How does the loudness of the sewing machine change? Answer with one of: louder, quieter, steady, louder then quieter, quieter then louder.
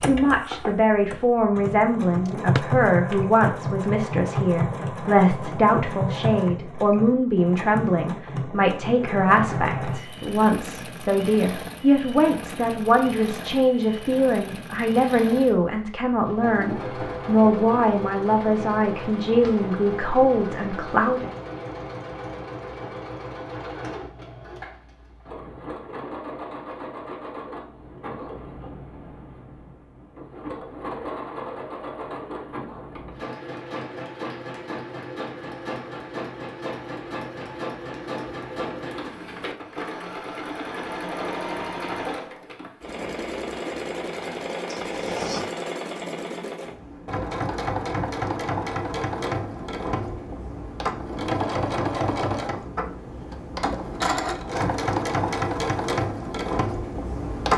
quieter then louder.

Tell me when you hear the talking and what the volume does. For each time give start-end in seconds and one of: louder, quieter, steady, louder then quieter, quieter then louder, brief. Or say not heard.
0.0-21.3 steady.